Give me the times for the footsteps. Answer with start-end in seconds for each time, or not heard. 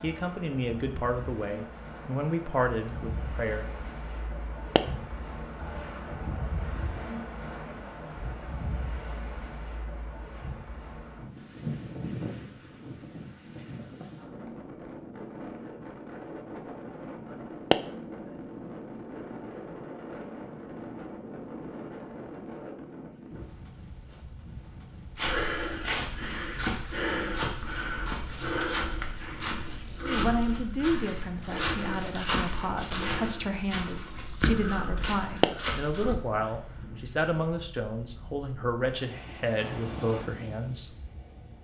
25.1-36.1.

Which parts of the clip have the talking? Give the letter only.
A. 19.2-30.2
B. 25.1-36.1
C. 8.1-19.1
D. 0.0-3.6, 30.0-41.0
D.